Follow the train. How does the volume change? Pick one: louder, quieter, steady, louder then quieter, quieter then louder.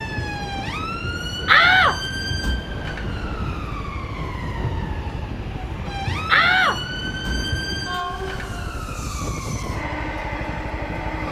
steady.